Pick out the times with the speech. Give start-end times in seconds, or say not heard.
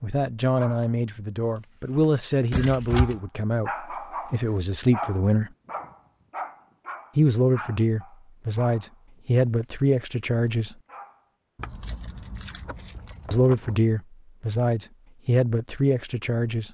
0.0-5.5, 7.2-10.8, 13.3-16.6.